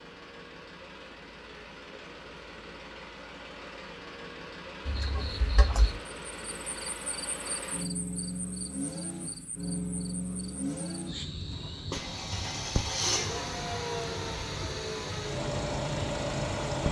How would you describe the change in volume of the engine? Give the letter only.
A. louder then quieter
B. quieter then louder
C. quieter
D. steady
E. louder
E.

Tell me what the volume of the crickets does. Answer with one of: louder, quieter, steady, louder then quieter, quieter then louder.
quieter then louder.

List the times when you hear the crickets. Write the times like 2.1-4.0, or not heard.
4.8-16.8.